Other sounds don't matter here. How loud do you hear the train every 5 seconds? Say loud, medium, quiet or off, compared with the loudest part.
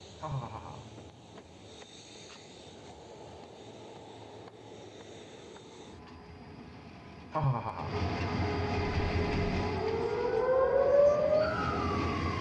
quiet, loud, loud.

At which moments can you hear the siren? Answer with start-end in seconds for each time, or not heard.
8.9-12.3.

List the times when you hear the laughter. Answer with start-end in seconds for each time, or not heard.
0.2-0.8, 7.3-8.0.